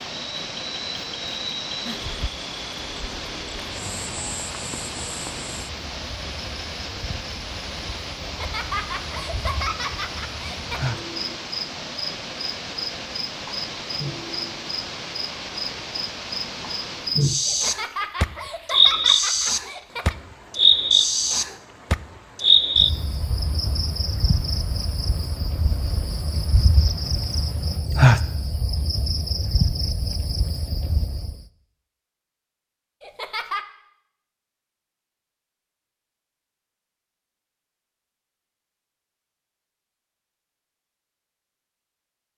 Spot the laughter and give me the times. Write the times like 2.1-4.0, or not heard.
8.2-10.9, 17.4-20.1, 33.0-33.6.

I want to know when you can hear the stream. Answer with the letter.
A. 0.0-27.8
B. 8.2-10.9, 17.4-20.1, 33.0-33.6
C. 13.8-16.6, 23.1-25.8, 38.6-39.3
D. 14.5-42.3
A.